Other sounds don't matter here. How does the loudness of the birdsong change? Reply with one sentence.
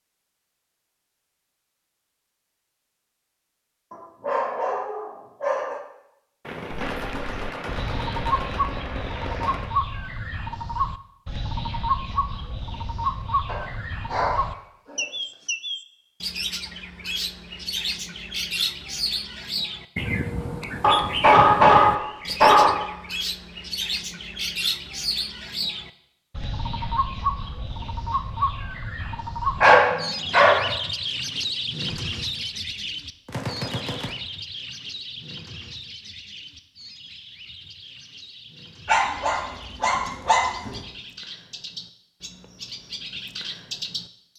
The loudness of the birdsong goes down.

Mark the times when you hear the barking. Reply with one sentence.
You can hear the barking from 3.9 to 5.8 s, from 13.4 to 15.1 s, from 20.8 to 22.8 s, from 29.6 to 30.7 s and from 38.9 to 40.8 s.